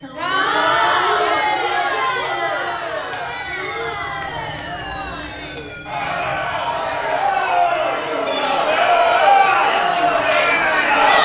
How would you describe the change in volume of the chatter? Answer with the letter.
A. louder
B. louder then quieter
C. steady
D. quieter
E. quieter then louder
E.